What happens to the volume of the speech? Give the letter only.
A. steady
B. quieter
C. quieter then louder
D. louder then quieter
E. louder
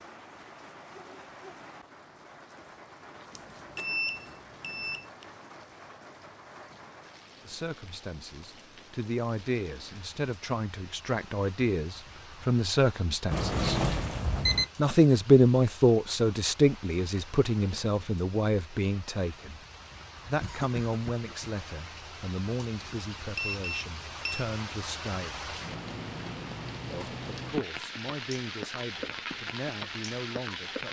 D.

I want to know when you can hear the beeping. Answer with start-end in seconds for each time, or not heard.
3.4-5.0, 13.3-14.7, 23.4-24.4.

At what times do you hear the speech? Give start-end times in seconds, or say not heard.
7.5-13.9, 14.8-19.6, 20.2-25.5, 26.9-30.8.